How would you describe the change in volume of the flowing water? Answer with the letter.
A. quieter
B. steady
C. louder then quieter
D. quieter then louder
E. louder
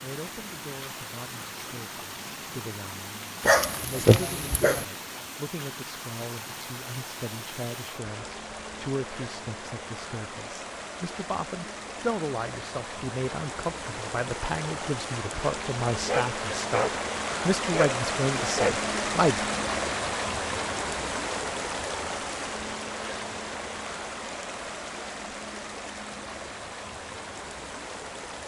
C.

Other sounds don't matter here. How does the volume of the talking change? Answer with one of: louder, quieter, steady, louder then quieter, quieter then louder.
louder.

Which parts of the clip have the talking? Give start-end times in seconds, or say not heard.
0.0-19.5.